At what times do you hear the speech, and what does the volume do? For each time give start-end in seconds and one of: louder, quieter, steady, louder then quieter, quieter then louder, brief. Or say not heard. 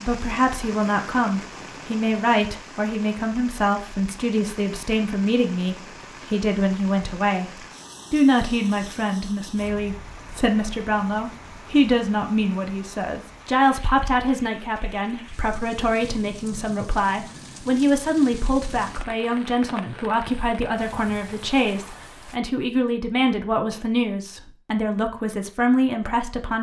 0.0-26.5 steady.